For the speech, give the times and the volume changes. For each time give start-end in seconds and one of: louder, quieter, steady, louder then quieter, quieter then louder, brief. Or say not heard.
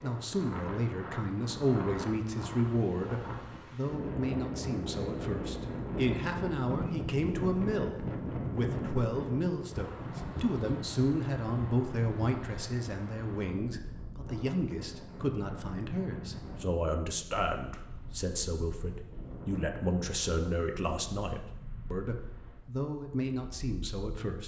0.0-24.4 steady.